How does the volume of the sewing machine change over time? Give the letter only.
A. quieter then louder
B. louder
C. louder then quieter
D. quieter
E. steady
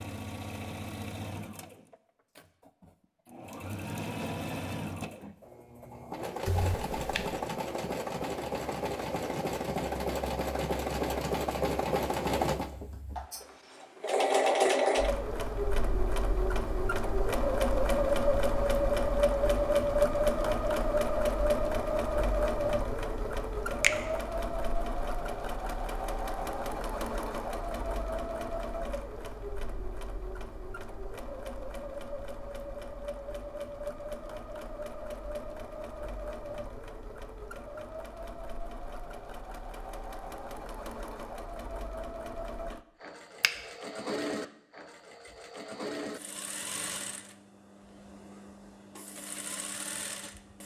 C.